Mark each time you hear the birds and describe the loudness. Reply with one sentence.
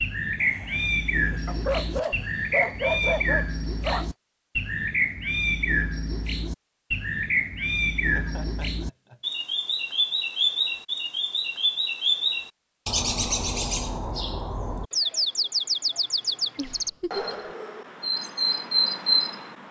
You can hear the birds from 0.0 to 19.6 s, at a steady volume.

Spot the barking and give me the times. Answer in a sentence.
You can hear the barking from 1.4 to 4.1 s.